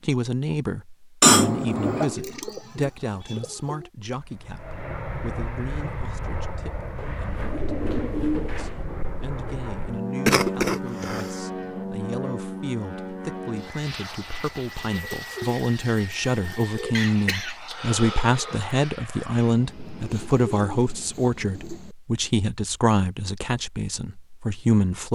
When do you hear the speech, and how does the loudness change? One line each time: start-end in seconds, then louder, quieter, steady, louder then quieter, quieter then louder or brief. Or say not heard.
0.0-25.0 quieter then louder.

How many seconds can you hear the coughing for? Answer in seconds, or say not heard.
4 s.